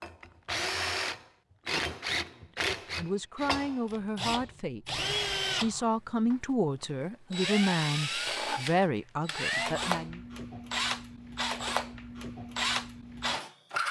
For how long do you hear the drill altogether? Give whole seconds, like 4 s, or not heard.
13 s.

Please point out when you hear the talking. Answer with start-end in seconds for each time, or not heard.
2.3-10.2.